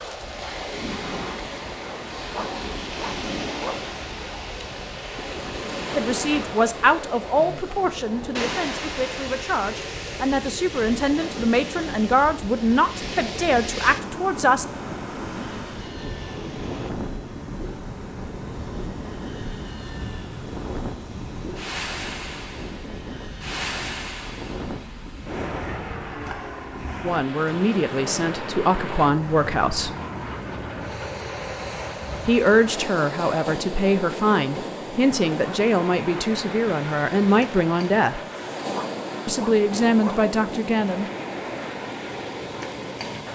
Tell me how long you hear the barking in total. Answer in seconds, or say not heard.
3 s.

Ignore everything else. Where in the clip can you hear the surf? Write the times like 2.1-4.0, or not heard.
0.0-43.2.